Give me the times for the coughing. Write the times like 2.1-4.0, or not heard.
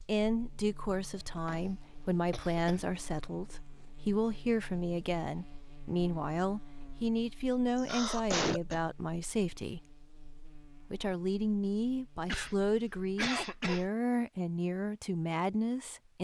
1.1-3.0, 7.8-8.8, 12.2-13.9.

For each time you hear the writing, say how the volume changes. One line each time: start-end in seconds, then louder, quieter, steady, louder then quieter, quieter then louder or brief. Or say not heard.
not heard.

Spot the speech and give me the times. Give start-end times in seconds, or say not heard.
0.1-9.9, 10.8-16.1.